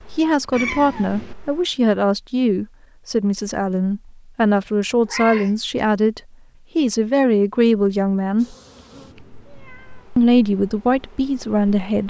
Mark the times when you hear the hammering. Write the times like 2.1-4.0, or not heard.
not heard.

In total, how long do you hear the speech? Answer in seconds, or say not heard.
10 s.